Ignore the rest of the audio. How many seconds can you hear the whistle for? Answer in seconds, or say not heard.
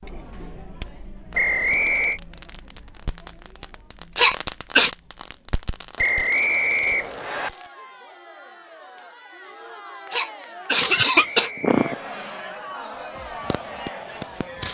4 s.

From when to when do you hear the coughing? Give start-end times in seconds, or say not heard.
4.2-4.9, 10.1-11.9.